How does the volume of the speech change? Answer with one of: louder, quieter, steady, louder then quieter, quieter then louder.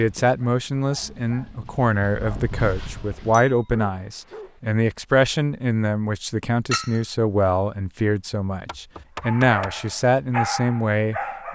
steady.